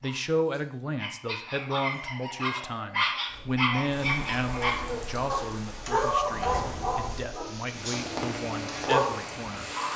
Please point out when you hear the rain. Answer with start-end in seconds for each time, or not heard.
3.2-9.9.